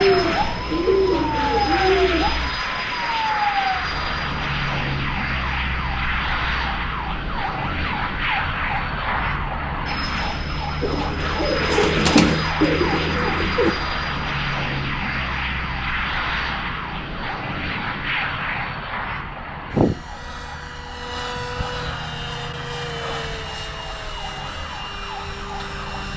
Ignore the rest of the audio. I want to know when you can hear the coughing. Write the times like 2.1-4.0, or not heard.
not heard.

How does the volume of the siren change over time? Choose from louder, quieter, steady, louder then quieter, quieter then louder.
quieter.